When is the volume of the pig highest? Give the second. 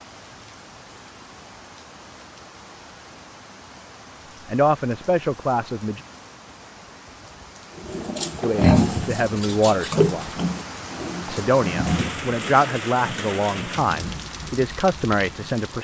9 s.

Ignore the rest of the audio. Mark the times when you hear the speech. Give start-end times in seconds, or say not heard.
4.5-6.0, 8.4-10.3, 11.2-15.7.